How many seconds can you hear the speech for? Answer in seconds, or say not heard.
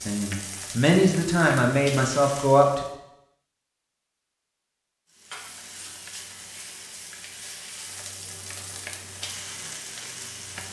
3 s.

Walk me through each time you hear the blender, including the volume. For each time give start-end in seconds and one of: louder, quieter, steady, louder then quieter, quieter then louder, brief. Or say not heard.
not heard.